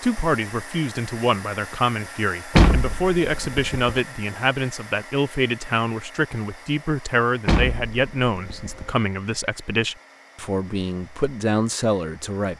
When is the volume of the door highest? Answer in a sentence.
The loudest moment of the door is at 3 seconds.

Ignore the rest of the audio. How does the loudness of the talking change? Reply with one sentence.
The loudness of the talking stays about the same.